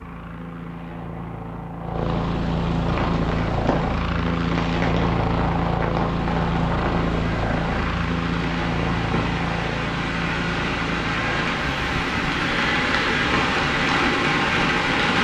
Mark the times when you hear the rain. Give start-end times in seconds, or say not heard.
2.8-15.1.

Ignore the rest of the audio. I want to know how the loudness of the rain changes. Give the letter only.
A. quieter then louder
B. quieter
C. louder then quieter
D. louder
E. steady
D.